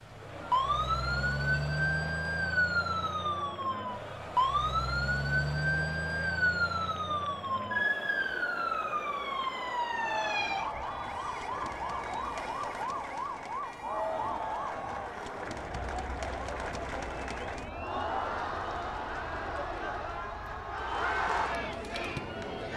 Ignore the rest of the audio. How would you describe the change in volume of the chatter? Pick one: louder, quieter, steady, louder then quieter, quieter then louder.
louder.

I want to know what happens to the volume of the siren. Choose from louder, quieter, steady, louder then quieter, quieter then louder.
quieter.